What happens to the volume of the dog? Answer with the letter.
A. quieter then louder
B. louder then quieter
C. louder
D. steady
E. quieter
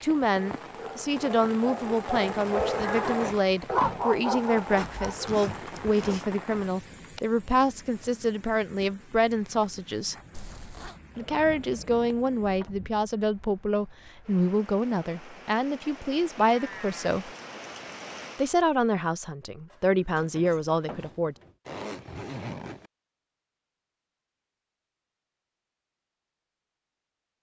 B.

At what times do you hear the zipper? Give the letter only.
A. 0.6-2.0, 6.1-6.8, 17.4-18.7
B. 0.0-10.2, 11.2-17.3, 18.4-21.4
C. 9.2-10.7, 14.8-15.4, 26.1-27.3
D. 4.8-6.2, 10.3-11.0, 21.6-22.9
D.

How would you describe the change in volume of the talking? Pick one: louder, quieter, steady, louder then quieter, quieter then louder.
steady.